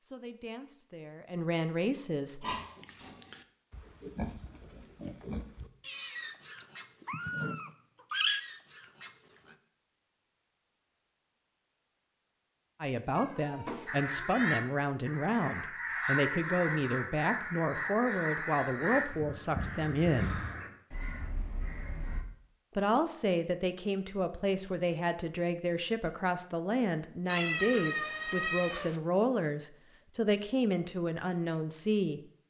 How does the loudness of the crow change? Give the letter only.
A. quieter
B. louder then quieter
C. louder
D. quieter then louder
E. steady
A.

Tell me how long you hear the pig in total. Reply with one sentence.
The pig can be heard for 7 seconds in total.